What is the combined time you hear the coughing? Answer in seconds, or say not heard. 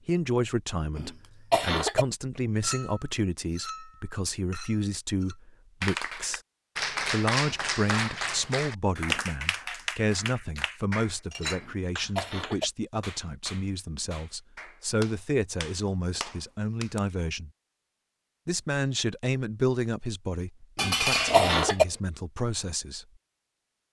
3 s.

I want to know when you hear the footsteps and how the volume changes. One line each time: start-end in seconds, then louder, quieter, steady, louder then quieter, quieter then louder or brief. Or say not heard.
not heard.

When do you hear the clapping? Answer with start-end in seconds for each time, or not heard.
5.8-17.0.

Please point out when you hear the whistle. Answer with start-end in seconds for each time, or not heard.
not heard.